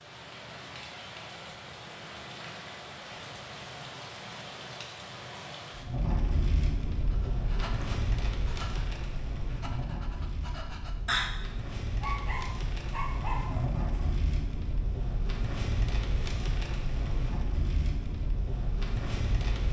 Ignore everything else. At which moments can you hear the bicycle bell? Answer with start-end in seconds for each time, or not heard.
not heard.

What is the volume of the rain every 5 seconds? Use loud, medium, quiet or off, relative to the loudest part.
medium, loud, loud, loud.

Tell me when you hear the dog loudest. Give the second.
11 s.